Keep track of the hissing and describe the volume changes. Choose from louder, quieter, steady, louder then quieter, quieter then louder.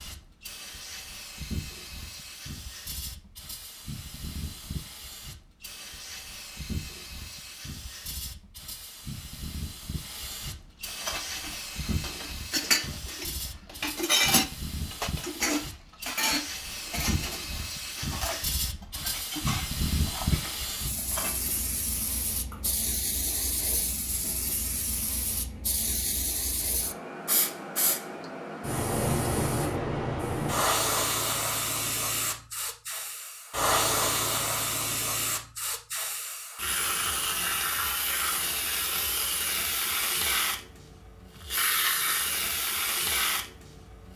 louder.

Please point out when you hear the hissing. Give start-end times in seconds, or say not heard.
0.0-44.1.